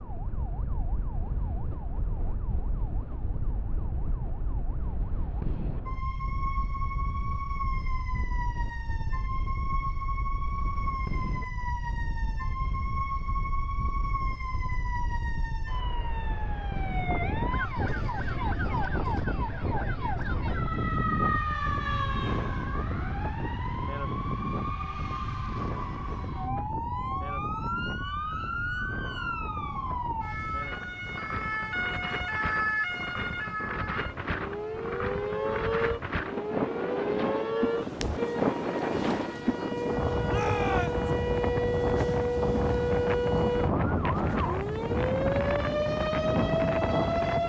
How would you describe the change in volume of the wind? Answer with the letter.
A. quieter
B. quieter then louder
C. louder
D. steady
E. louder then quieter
C.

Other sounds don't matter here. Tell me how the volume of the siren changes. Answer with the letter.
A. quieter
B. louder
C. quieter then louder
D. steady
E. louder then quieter
B.